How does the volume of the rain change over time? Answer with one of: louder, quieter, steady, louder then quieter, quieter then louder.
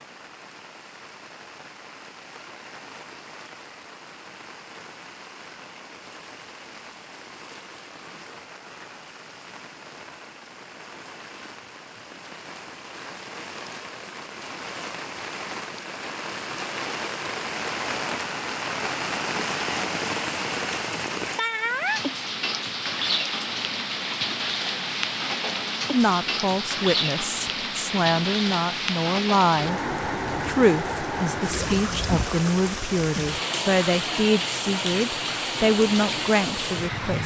louder.